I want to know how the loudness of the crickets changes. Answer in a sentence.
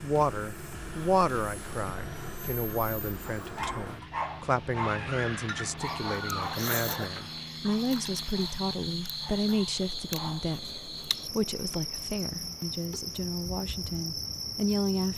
The volume of the crickets stays about the same.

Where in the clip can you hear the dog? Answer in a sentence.
The dog can be heard from 3.2 to 10.6 s.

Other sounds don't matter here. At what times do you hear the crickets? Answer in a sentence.
You can hear the crickets from 5.8 to 15.1 s.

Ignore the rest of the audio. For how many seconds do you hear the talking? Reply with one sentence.
The talking can be heard for 15 seconds in total.